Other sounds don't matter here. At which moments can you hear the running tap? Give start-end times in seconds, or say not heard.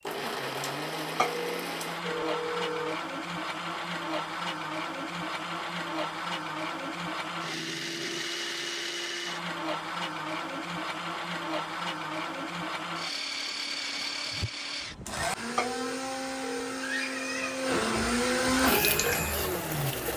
18.6-20.1.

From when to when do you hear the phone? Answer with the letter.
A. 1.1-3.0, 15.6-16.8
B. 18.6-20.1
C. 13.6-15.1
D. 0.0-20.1
A.